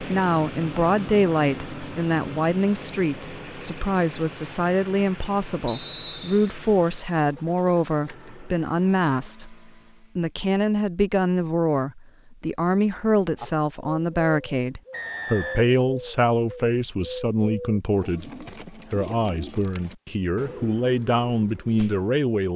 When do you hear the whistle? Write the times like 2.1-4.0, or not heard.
5.7-6.5, 14.9-15.7.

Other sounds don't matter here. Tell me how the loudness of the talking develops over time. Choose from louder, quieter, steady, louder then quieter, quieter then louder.
steady.